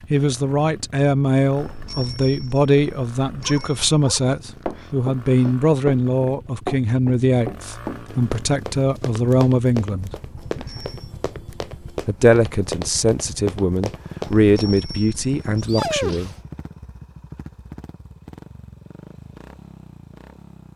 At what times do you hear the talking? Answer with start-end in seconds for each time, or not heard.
0.1-10.1, 12.1-16.3.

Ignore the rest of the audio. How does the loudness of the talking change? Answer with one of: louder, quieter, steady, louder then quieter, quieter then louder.
steady.